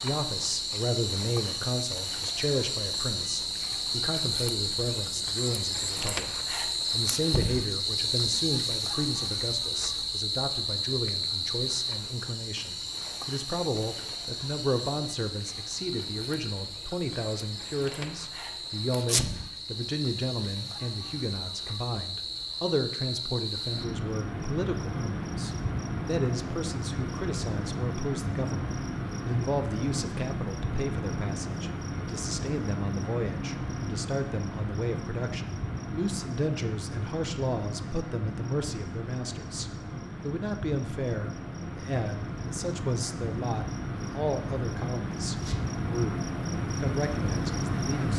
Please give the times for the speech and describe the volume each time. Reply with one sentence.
You can hear the speech from 0.0 to 48.1 s, at a steady volume.